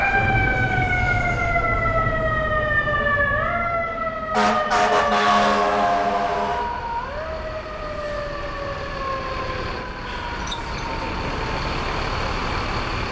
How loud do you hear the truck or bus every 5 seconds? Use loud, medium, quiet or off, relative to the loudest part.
medium, medium, loud.